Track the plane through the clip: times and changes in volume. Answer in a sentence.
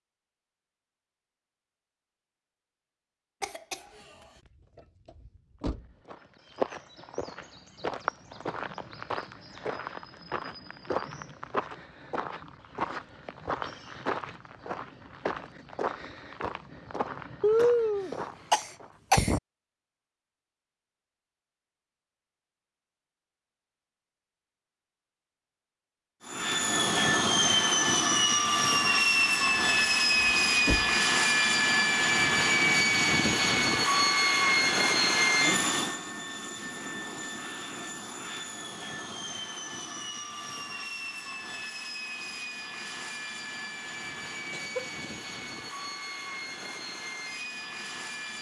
You can hear the plane from 26.2 to 48.3 s, getting quieter.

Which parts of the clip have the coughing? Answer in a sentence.
You can hear the coughing from 3.4 to 4.2 s, from 17.4 to 19.4 s and from 44.5 to 45.2 s.